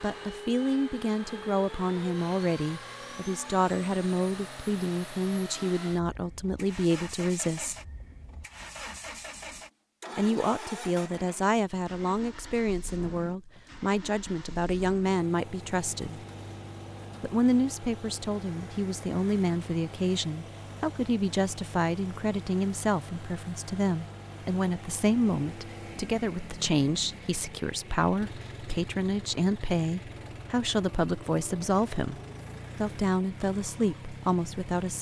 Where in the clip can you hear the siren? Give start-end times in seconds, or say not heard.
not heard.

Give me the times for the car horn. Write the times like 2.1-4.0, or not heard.
not heard.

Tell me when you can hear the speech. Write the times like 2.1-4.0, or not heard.
0.0-7.8, 10.2-16.2, 17.2-34.9.